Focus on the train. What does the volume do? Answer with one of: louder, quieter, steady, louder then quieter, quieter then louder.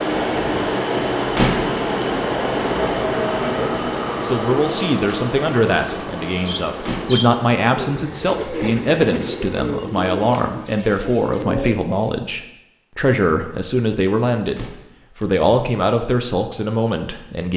quieter.